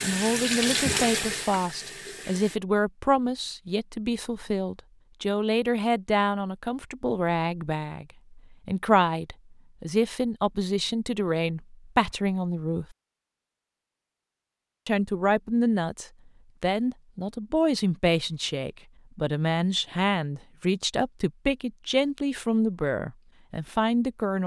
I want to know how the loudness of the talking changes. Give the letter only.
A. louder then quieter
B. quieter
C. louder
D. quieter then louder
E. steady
E.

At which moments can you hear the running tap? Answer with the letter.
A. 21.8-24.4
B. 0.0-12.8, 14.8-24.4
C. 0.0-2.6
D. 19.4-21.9
C.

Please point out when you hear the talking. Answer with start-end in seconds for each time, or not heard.
0.0-12.8, 14.8-24.4.